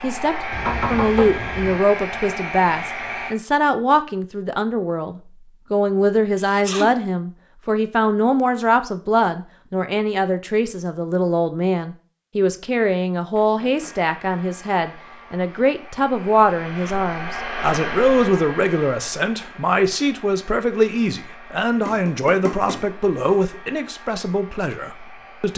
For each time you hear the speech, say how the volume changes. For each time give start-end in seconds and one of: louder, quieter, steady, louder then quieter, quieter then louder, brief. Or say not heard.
0.0-25.5 steady.